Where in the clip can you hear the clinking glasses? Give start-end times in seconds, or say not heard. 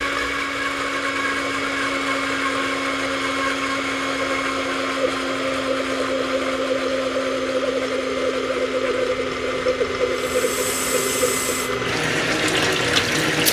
not heard.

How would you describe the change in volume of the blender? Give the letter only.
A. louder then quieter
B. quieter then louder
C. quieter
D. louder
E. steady
E.